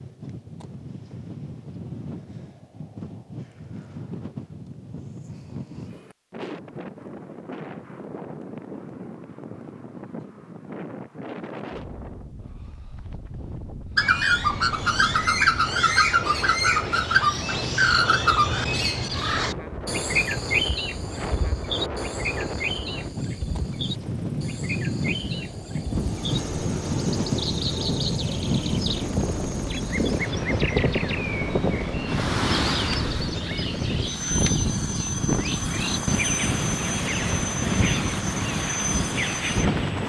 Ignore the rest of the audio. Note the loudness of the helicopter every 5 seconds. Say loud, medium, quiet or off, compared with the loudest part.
off, off, off, off, quiet, loud, loud, loud.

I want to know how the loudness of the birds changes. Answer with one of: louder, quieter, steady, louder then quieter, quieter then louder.
quieter.